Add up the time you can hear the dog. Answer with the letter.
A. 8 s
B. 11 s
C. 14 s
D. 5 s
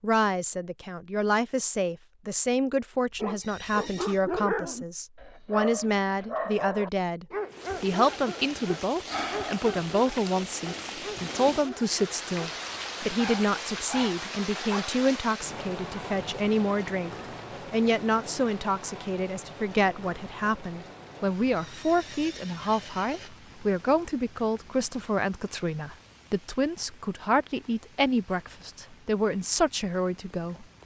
B.